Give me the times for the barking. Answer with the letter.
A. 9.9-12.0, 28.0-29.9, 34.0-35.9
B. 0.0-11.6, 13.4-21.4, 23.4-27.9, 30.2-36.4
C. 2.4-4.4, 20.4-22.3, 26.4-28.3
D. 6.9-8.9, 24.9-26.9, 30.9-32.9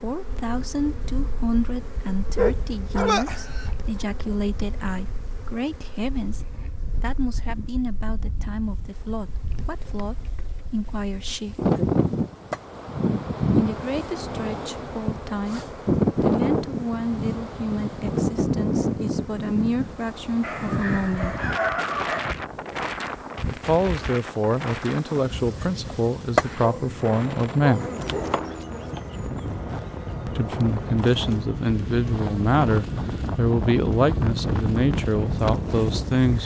C.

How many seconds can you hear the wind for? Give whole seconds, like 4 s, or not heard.
36 s.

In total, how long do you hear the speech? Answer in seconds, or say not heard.
30 s.